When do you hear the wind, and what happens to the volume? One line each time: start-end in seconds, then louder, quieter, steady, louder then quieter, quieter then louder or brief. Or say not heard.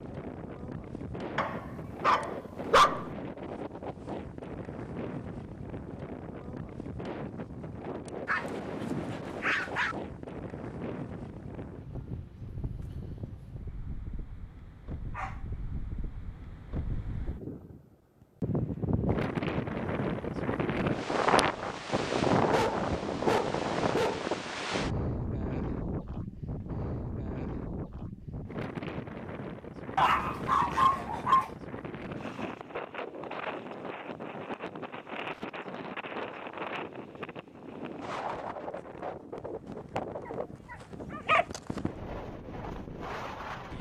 0.0-43.7 louder then quieter.